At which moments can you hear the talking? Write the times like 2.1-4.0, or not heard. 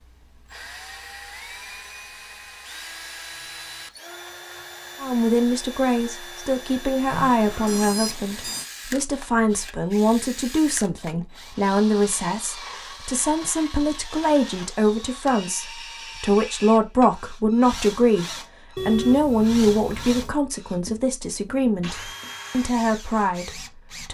5.0-24.0.